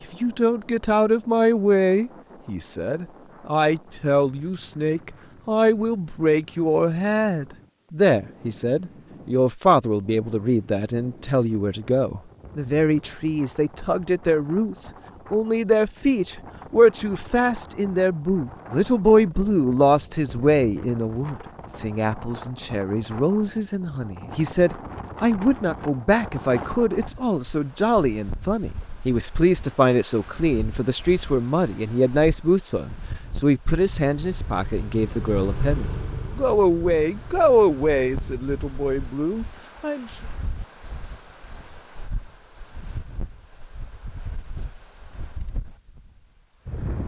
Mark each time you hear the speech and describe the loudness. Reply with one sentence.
The speech can be heard from 0.1 to 40.1 s, at a steady volume.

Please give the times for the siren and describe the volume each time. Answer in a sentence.
You can't hear the siren here.